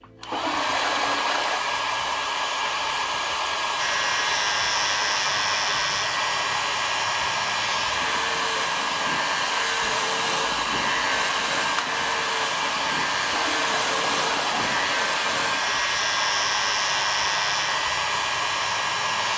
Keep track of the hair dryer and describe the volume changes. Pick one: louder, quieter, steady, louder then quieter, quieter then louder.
steady.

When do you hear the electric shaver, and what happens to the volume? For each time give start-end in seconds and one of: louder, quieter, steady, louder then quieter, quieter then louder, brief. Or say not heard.
3.8-19.3 steady.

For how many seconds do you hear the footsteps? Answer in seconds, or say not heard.
not heard.